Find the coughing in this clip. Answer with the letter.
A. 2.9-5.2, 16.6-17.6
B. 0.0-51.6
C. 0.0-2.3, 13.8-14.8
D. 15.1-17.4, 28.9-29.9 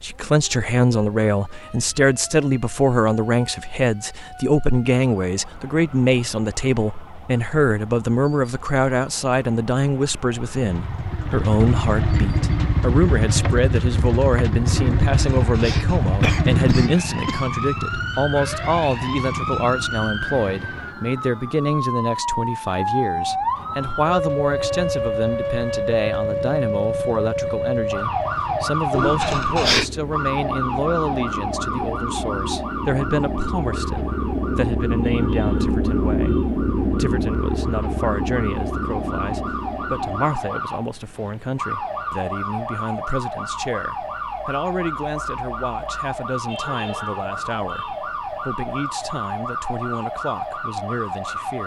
D.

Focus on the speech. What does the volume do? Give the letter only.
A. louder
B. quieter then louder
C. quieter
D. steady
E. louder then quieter
C.